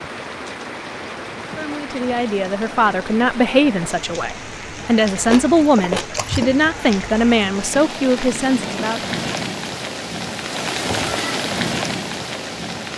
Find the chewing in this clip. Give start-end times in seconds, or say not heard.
5.2-6.8.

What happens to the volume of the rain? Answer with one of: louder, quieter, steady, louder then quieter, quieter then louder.
louder.